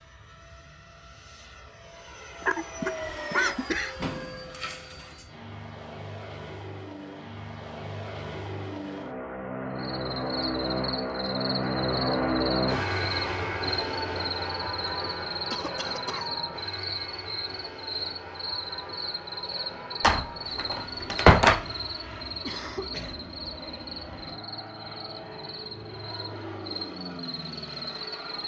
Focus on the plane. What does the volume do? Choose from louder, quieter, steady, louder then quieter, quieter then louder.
louder then quieter.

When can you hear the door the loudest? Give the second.
21 s.